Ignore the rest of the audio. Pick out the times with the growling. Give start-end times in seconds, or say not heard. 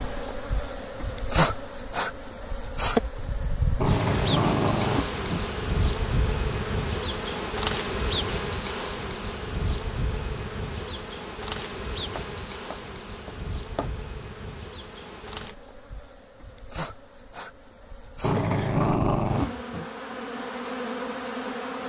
3.8-5.4, 18.2-19.9.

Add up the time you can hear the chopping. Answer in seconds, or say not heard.
2 s.